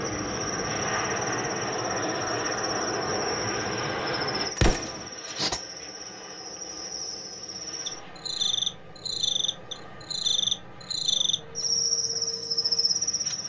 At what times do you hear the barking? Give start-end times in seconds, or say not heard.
not heard.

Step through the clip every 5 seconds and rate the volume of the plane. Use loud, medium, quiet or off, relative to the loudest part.
loud, quiet, quiet.